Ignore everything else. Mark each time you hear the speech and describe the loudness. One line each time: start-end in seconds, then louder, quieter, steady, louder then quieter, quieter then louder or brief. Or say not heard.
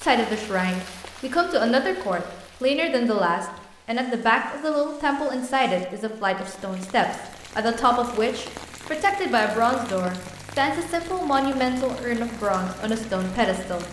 0.0-13.8 steady.